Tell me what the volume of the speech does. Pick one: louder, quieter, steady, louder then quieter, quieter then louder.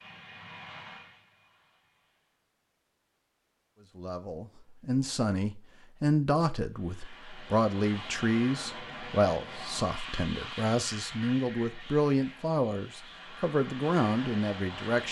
steady.